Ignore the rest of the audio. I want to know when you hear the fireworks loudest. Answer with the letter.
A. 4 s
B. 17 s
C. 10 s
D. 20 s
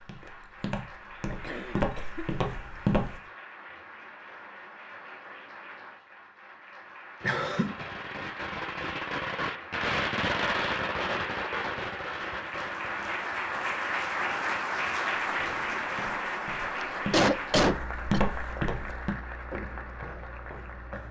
C.